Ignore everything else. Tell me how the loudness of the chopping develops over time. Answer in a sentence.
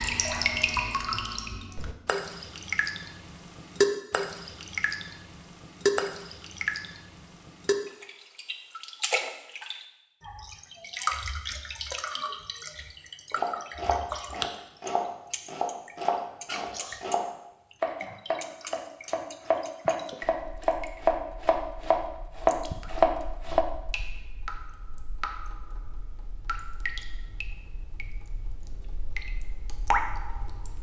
The volume of the chopping goes up.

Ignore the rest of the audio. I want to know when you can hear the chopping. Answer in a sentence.
The chopping can be heard from 13.3 to 23.6 s.